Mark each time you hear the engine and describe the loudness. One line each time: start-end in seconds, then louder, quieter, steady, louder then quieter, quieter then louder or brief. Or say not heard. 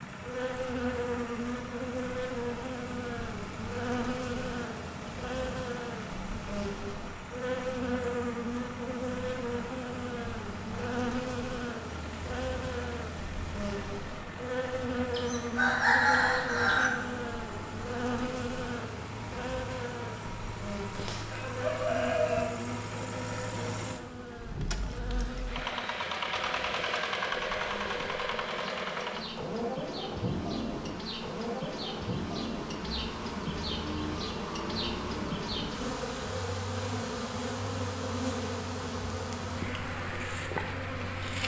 0.0-41.4 louder then quieter.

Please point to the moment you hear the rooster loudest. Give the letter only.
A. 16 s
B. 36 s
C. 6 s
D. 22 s
A.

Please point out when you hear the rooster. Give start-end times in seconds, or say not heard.
15.1-16.9, 20.9-22.4.